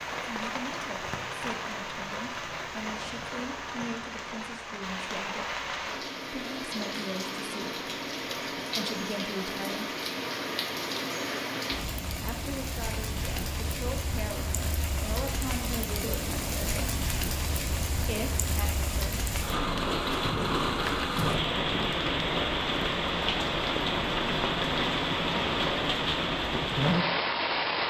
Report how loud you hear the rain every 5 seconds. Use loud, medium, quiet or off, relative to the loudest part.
medium, medium, medium, medium, loud, loud.